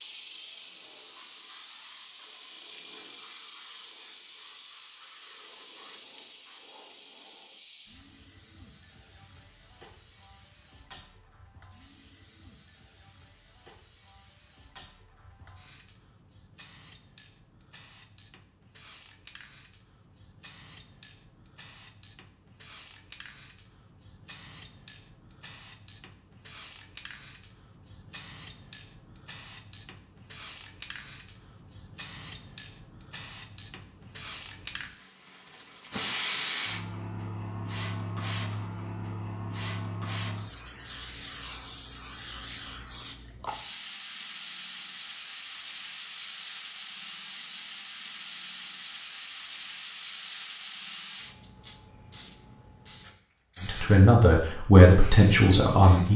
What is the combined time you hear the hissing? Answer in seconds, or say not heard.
56 s.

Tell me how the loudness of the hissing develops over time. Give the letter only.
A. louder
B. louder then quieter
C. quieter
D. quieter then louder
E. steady
D.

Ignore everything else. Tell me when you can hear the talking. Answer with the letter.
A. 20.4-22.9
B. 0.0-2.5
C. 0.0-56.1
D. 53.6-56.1
D.